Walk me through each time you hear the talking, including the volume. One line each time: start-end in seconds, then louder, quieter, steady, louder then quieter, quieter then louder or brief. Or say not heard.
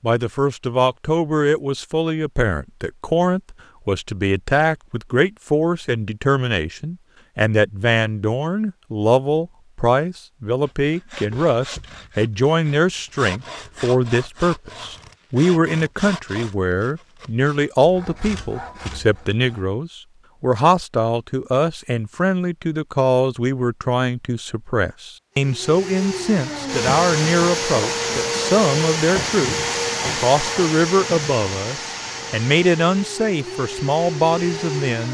0.0-35.0 steady.